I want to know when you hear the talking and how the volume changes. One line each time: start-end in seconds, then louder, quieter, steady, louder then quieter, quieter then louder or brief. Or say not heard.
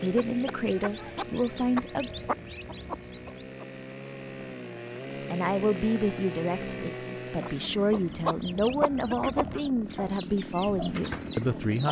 0.0-2.1 brief
5.3-11.8 steady.